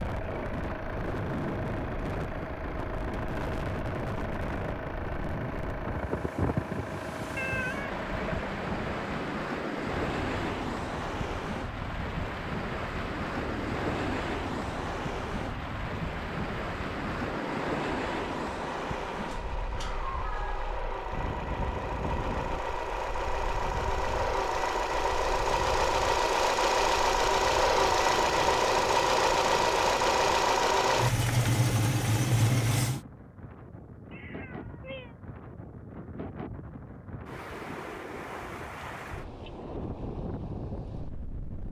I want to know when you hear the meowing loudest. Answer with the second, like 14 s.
8 s.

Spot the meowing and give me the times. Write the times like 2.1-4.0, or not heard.
7.3-9.4, 19.2-20.8, 34.1-35.1.